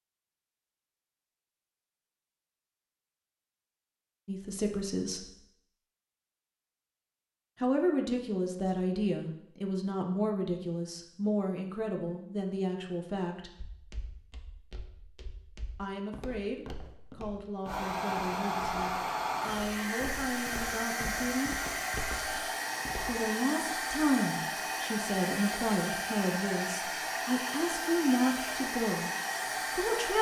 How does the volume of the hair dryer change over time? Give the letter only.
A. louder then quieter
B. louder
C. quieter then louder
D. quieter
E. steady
E.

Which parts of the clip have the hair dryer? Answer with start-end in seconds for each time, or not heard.
17.6-30.1.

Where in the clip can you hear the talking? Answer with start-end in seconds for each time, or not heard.
4.2-5.3, 7.5-13.6, 15.8-21.6, 23.1-29.1, 29.7-30.1.